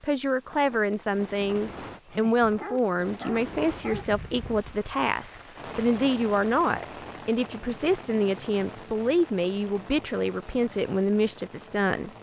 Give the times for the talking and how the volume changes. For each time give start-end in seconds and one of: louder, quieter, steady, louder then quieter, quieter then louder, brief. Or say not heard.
0.0-12.1 steady.